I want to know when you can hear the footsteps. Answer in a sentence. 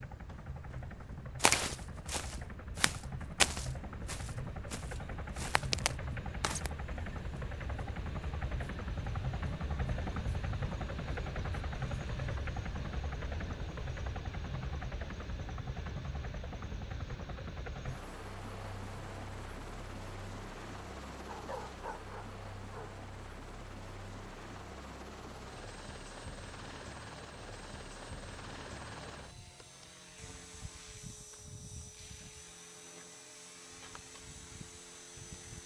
You can hear the footsteps from 1.4 to 6.7 s.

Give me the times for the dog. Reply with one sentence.
You can hear the dog from 21.2 to 22.9 s.